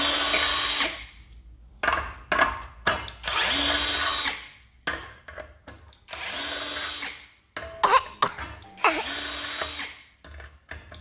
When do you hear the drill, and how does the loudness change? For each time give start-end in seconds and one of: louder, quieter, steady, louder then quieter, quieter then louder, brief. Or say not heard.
0.0-10.9 quieter.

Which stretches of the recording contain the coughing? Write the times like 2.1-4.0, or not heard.
0.3-1.0, 7.6-9.1.